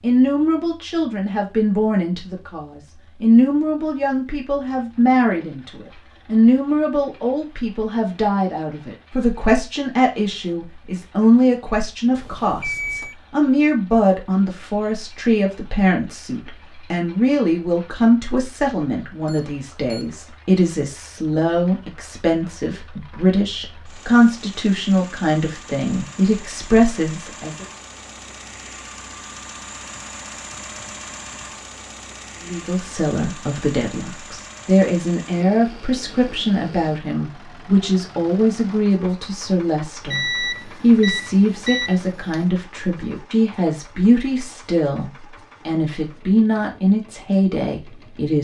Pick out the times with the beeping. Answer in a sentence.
You can hear the beeping from 12.1 to 13.2 s, from 19.2 to 20.2 s and from 40.0 to 42.5 s.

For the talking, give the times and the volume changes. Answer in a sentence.
The talking can be heard from 0.0 to 27.6 s, at a steady volume; and from 32.4 to 48.3 s, at a steady volume.